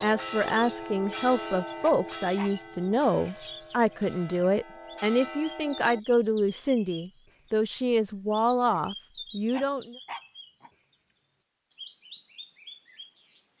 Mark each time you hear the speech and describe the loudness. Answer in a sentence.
You can hear the speech from 0.0 to 9.9 s, at a steady volume.